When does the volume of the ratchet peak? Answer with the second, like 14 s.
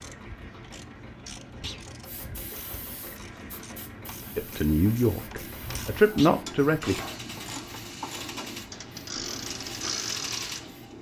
10 s.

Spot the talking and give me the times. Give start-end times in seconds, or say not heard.
4.3-7.0.